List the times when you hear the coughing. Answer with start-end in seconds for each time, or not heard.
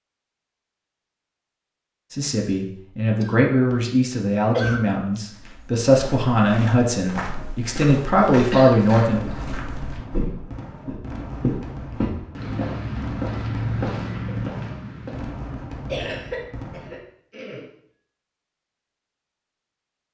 3.2-3.9, 4.5-5.2, 8.3-9.6, 15.8-17.6.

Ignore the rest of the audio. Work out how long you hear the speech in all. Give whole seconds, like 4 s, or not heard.
7 s.